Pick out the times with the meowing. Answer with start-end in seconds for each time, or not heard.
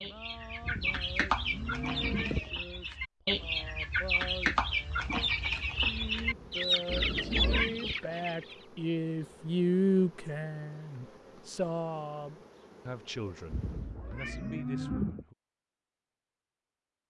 1.4-2.6, 6.8-7.7, 13.7-14.7.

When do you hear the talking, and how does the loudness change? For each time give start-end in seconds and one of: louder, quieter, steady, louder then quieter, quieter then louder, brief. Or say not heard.
0.0-15.3 louder then quieter.